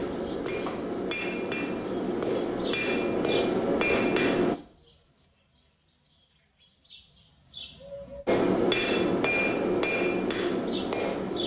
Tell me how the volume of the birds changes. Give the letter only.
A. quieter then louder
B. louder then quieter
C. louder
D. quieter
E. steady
A.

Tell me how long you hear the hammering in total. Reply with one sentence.
The hammering can be heard for 8 seconds in total.